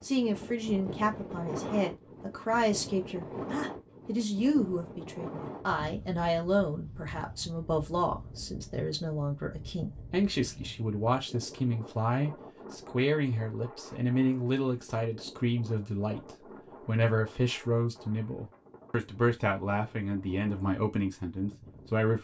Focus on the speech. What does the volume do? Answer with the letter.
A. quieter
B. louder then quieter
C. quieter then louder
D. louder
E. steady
E.